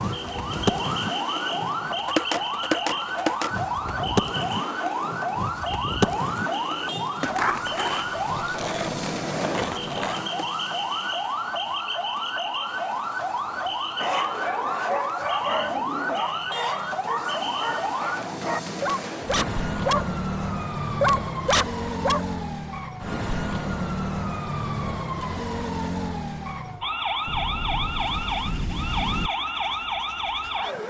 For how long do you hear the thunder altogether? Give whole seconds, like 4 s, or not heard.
2 s.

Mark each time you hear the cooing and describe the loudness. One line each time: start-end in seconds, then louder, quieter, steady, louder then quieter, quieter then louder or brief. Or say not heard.
not heard.